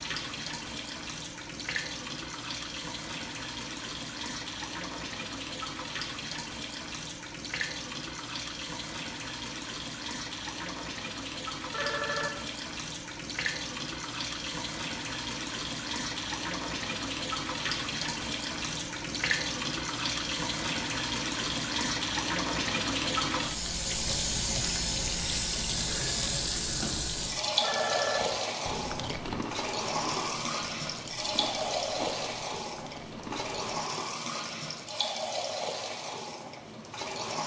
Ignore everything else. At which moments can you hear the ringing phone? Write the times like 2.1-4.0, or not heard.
11.7-12.4, 27.6-28.3.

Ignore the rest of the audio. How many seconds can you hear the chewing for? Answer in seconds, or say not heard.
6 s.